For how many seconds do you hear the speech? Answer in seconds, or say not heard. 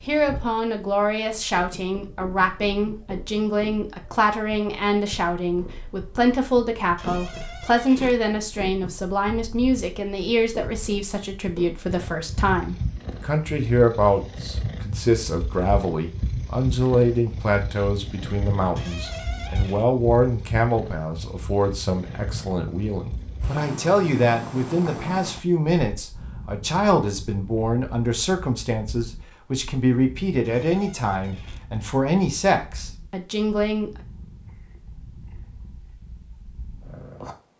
34 s.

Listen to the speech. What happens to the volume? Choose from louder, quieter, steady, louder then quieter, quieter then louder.
steady.